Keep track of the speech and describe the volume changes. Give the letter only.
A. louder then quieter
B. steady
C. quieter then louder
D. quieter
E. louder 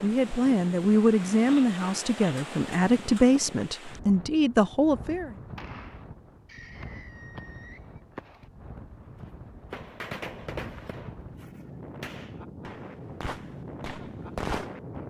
B.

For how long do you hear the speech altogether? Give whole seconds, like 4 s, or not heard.
5 s.